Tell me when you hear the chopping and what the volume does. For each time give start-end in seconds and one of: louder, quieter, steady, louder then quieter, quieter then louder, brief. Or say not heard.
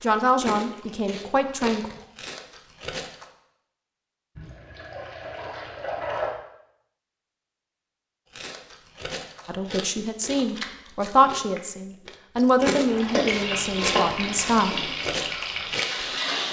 not heard.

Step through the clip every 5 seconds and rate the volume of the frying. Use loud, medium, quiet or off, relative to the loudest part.
off, off, loud, loud.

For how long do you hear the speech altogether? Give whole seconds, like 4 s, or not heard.
7 s.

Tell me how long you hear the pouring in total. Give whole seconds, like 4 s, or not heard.
4 s.